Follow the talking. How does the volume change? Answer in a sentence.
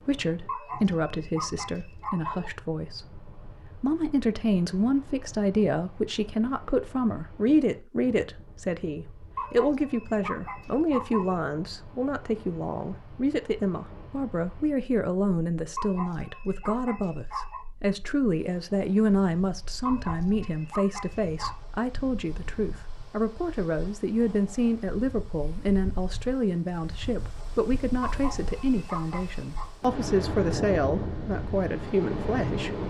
The loudness of the talking stays about the same.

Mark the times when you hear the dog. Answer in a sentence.
The dog can be heard from 0.5 to 2.5 s, from 9.3 to 11.3 s, from 15.8 to 17.6 s, from 19.9 to 21.6 s and from 28.0 to 29.7 s.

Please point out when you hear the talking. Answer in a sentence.
The talking can be heard from 0.1 to 32.8 s.